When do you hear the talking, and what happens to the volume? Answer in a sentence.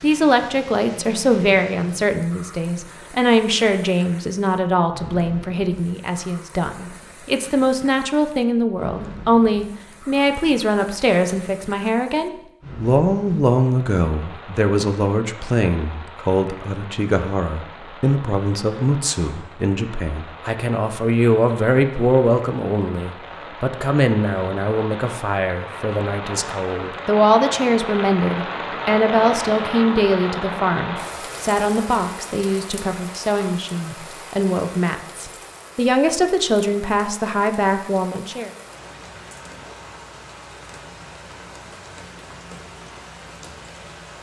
The talking can be heard from 0.0 to 38.5 s, at a steady volume.